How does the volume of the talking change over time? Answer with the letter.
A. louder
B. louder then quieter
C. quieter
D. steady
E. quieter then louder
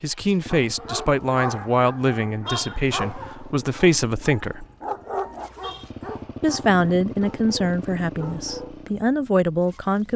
D.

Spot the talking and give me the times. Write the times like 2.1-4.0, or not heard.
0.0-4.7, 6.4-10.1.